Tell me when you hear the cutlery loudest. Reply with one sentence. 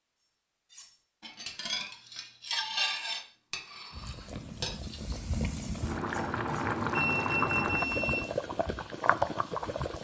The loudest moment of the cutlery is at 3 seconds.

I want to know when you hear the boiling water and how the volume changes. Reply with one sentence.
The boiling water can be heard from 3.9 to 9.9 s, getting louder.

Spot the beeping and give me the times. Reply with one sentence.
The beeping can be heard from 5.8 to 8.3 s.